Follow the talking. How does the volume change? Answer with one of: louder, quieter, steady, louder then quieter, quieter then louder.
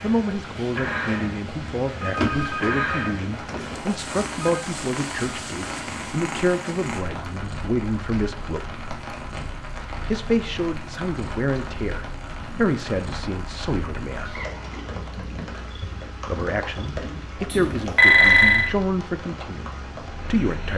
steady.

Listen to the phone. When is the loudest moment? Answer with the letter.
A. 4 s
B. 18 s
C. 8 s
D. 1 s
B.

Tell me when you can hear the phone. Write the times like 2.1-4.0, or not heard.
2.0-4.7, 17.5-18.8.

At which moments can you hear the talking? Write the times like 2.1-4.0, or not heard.
0.0-8.8, 10.1-14.3, 16.2-20.7.